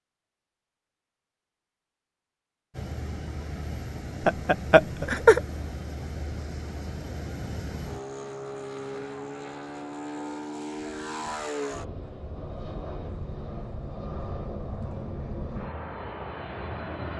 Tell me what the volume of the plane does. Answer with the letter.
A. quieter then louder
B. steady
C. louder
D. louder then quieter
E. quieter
B.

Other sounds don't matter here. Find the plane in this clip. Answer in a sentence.
The plane can be heard from 2.7 to 17.1 s.